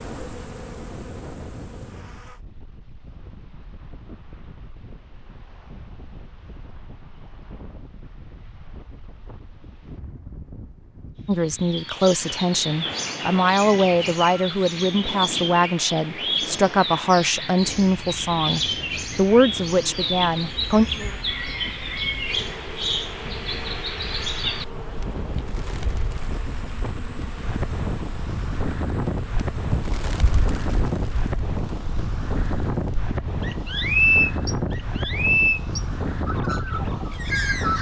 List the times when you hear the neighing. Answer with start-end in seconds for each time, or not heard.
not heard.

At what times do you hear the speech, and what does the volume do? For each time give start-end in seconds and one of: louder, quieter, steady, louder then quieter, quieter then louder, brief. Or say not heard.
11.2-20.9 steady.